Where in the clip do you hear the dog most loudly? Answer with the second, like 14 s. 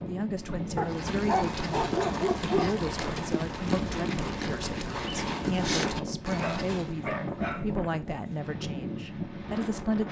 2 s.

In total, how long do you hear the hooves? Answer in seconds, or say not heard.
6 s.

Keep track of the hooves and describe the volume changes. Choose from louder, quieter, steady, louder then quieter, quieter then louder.
steady.